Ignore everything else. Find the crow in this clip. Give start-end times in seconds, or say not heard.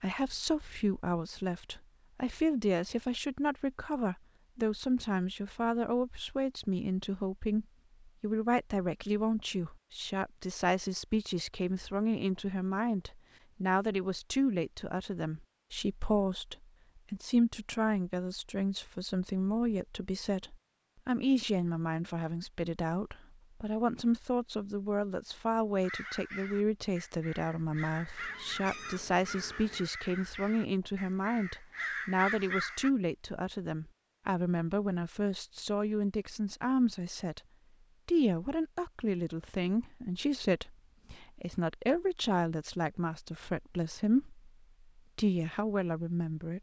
25.8-32.9.